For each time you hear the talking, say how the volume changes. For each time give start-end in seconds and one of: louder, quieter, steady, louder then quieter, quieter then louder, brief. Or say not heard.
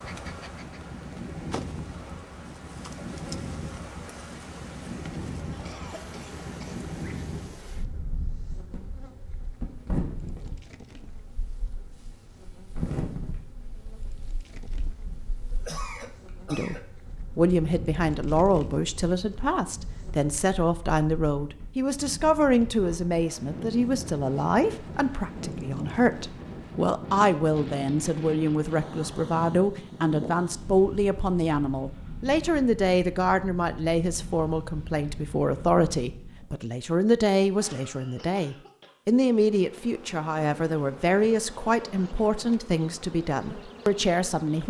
16.5-44.6 steady.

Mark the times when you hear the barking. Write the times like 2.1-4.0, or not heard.
not heard.